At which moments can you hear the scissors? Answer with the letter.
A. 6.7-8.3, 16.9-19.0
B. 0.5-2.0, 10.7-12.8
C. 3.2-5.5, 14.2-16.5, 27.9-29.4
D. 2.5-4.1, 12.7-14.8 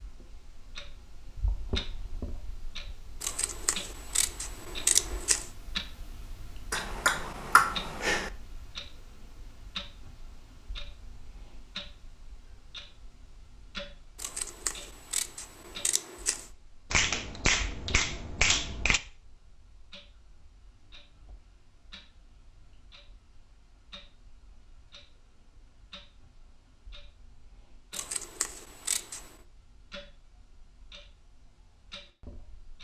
C.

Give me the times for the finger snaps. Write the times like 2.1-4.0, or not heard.
6.7-8.3, 16.9-19.0.